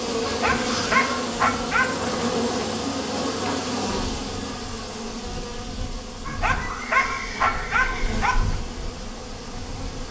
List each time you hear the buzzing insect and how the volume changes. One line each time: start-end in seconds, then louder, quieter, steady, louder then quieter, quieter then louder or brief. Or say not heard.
0.0-10.0 quieter.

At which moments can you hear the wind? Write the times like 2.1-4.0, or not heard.
1.9-10.0.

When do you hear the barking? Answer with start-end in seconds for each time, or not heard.
0.2-2.0, 6.2-8.6.